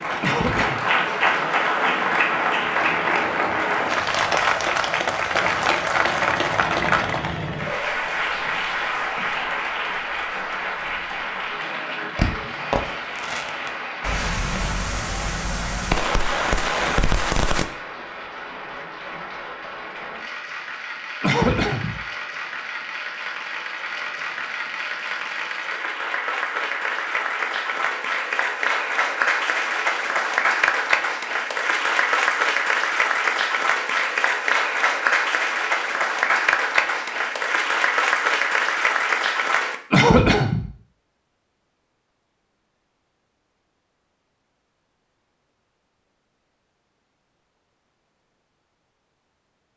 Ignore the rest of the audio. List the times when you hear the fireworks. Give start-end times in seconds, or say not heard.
12.2-17.6.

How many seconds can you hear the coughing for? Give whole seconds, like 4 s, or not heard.
2 s.